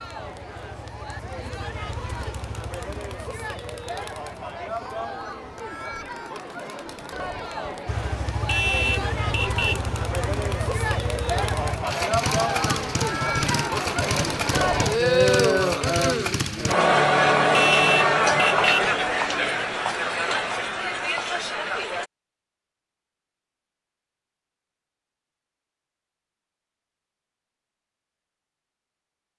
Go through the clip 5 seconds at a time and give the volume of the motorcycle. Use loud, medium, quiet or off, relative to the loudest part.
quiet, medium, loud, loud, off, off.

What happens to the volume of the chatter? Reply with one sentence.
The loudness of the chatter goes up.